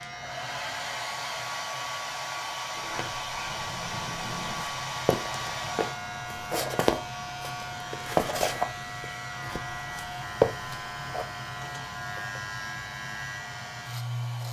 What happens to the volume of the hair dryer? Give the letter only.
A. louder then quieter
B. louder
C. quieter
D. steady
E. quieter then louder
C.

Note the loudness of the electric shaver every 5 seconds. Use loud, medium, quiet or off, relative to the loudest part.
medium, loud, loud.